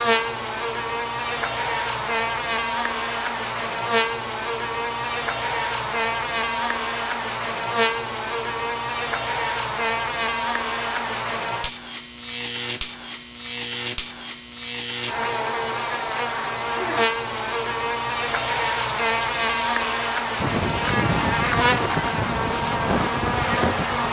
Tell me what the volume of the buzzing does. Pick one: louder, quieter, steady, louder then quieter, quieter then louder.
steady.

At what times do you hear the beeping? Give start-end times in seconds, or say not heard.
not heard.